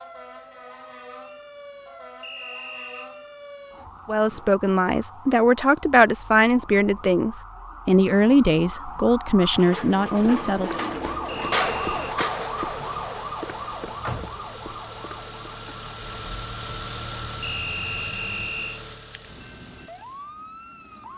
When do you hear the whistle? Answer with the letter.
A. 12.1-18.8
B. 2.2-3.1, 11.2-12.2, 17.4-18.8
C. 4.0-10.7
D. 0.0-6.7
B.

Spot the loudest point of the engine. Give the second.
17 s.